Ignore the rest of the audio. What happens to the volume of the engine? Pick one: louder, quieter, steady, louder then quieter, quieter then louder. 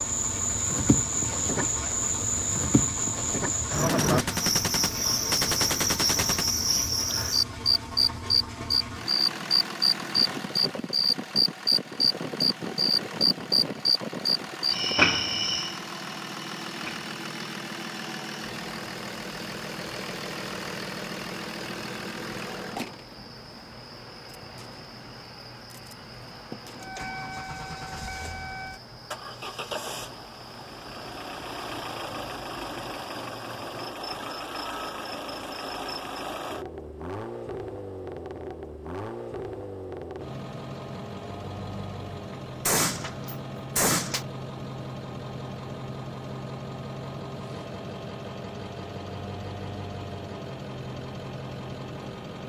steady.